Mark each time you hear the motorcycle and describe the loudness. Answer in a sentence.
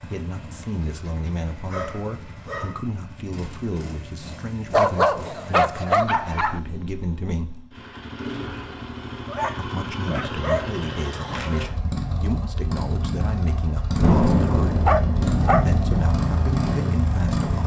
The motorcycle can be heard from 0.0 to 17.6 s, getting louder.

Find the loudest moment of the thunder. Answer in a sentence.
The loudest moment of the thunder is at 14 seconds.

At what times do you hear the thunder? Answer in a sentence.
You can hear the thunder from 14.0 to 16.0 s.